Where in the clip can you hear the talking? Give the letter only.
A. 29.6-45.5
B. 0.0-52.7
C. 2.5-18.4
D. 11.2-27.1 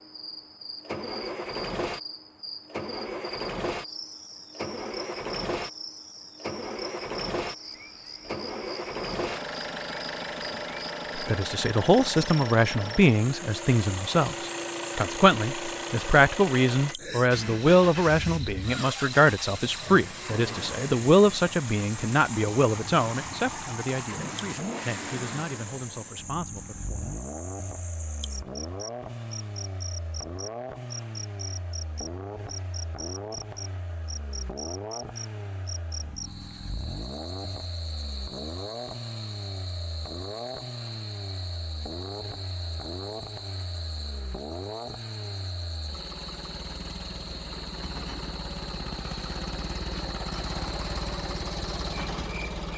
D.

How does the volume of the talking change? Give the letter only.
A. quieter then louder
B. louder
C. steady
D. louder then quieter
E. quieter
E.